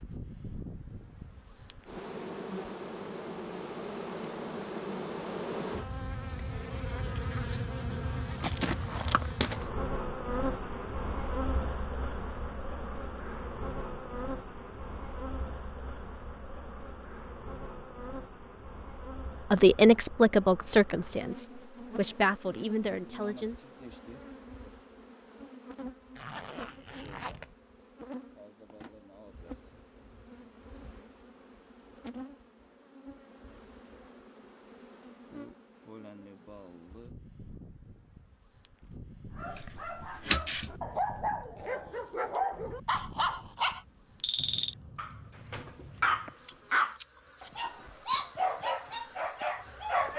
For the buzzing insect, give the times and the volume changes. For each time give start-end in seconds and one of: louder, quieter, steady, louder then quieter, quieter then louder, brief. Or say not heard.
0.0-50.1 quieter.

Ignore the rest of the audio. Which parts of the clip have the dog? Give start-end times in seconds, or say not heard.
39.4-50.1.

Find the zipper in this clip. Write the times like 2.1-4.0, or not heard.
26.1-27.6.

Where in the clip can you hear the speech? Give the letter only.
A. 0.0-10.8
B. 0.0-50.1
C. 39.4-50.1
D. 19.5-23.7
D.